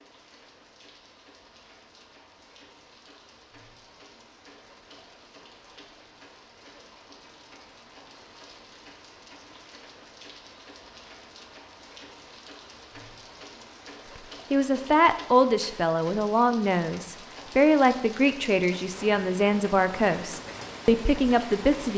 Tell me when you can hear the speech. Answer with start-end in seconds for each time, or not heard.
14.5-21.9.